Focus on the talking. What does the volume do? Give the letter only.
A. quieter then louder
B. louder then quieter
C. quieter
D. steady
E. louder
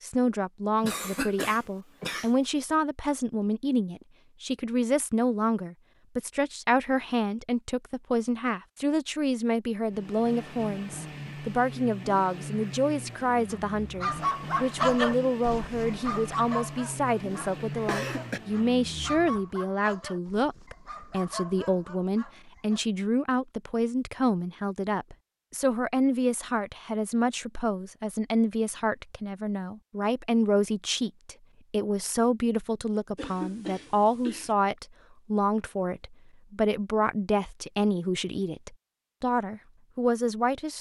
D.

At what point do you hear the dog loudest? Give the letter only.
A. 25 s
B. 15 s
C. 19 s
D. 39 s
B.